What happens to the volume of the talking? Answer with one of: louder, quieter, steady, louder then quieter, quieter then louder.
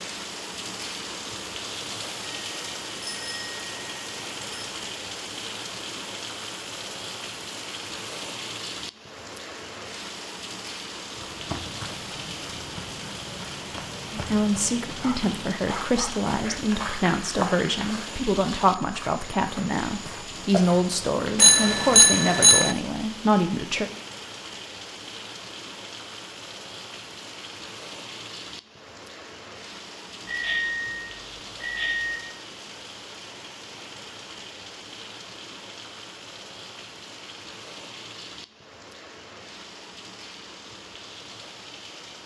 steady.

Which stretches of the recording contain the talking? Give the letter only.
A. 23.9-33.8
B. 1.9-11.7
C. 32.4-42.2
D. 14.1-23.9
D.